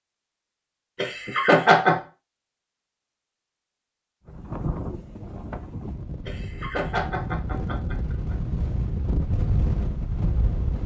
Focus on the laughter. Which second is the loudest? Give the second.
2 s.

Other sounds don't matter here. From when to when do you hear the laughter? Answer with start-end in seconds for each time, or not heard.
0.9-2.0, 6.2-8.3.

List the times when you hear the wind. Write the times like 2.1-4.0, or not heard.
4.2-10.8.